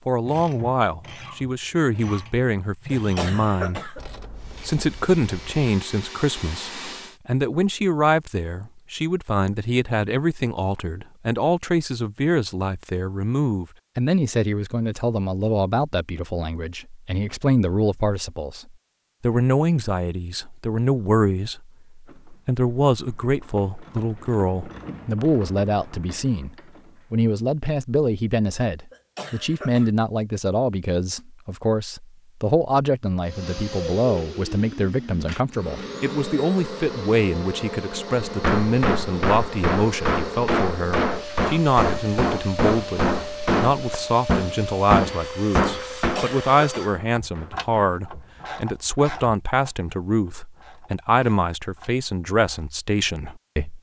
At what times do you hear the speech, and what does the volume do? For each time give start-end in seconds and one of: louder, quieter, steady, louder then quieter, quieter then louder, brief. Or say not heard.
0.1-53.7 steady.